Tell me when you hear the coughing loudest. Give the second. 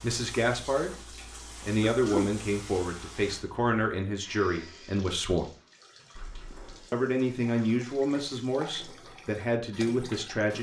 2 s.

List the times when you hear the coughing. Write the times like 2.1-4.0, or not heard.
1.9-2.4, 6.2-6.9.